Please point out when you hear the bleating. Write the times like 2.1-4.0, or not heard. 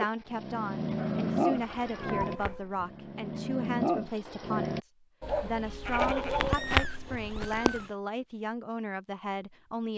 1.5-2.9, 5.8-7.8.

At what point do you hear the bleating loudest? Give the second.
7 s.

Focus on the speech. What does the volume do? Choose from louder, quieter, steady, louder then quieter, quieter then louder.
steady.